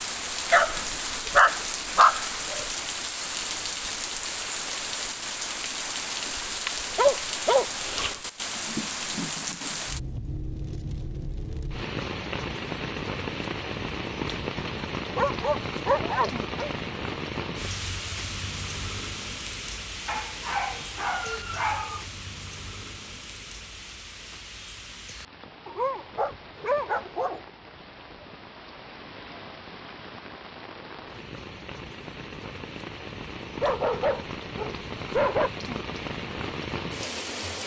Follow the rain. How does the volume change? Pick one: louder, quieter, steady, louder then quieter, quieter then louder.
quieter then louder.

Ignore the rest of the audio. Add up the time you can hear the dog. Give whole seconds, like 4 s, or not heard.
10 s.